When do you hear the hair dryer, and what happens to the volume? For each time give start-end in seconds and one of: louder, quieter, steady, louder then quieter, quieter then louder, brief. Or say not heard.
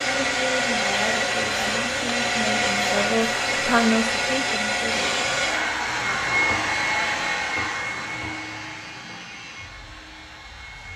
0.0-10.9 quieter.